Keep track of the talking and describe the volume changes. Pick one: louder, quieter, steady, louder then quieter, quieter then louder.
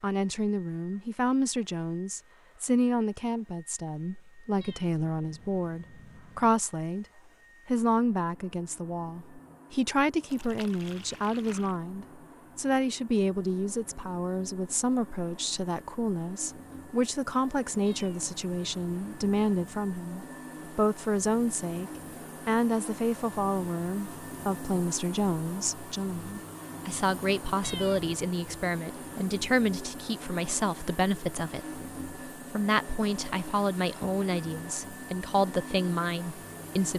steady.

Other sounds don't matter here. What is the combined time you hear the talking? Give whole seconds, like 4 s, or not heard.
36 s.